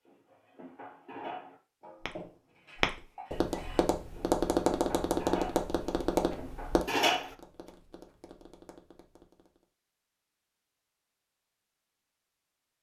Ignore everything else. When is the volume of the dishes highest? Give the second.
7 s.